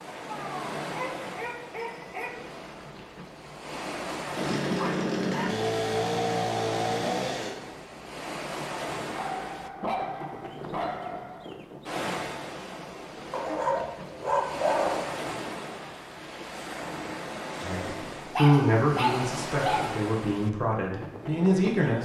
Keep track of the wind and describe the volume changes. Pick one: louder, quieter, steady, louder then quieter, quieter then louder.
steady.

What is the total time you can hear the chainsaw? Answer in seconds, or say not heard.
3 s.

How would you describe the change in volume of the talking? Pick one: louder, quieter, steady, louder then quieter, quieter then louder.
quieter then louder.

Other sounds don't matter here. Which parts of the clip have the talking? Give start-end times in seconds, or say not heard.
17.6-22.0.